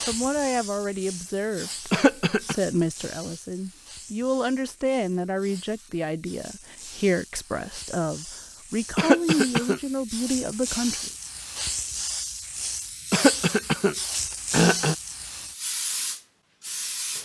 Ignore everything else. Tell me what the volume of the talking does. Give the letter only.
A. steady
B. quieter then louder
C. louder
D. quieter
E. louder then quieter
A.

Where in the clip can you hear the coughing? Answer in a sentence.
The coughing can be heard from 1.9 to 2.5 s, from 8.9 to 9.8 s and from 13.1 to 14.9 s.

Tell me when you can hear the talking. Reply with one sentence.
The talking can be heard from 0.1 to 11.1 s.